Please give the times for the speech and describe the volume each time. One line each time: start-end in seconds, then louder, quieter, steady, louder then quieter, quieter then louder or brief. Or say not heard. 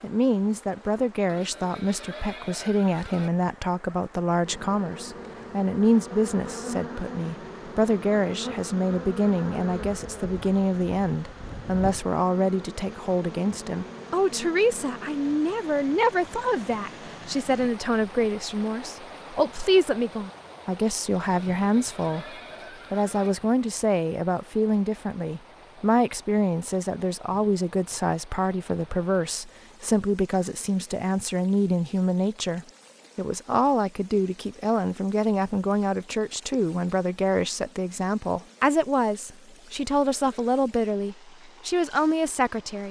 0.0-42.8 steady.